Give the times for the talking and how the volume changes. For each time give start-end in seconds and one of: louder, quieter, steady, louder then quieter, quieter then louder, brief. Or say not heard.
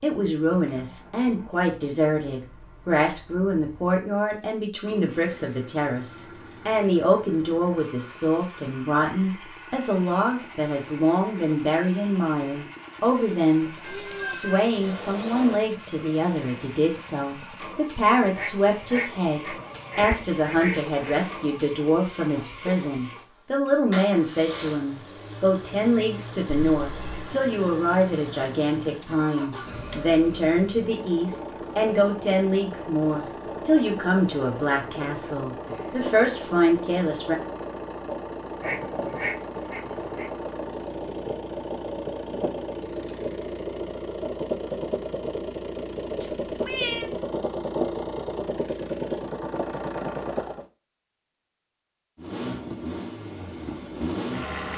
0.0-37.4 steady.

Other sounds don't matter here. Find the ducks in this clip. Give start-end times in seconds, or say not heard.
18.4-21.3, 38.6-40.3.